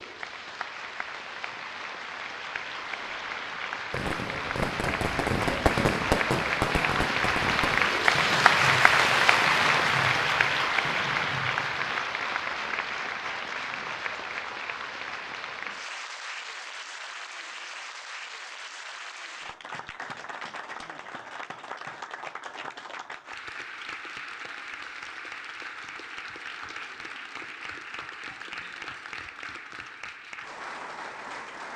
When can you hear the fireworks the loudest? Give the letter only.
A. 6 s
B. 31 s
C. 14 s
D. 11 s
A.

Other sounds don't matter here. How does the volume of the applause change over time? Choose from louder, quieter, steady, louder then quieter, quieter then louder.
louder then quieter.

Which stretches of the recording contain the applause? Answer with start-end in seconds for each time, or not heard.
0.0-31.7.